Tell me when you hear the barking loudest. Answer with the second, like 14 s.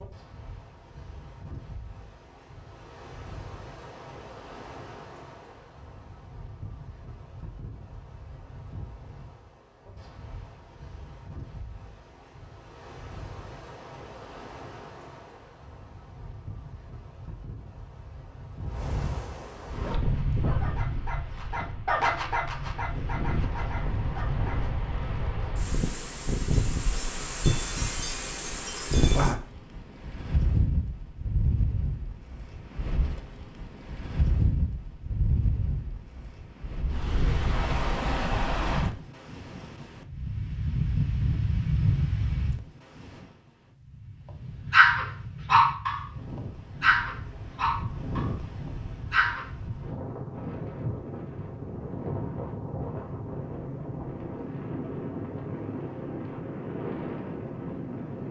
45 s.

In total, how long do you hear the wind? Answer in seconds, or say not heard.
58 s.